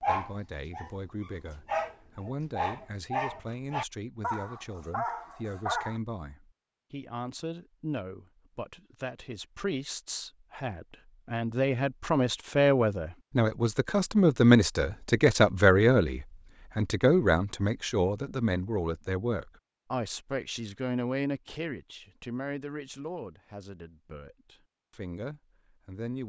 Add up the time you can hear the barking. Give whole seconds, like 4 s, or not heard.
6 s.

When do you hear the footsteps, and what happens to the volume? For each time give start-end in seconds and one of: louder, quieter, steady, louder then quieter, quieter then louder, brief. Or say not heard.
not heard.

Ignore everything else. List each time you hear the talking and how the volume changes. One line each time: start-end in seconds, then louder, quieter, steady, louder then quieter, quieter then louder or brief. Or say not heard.
0.0-26.2 louder then quieter.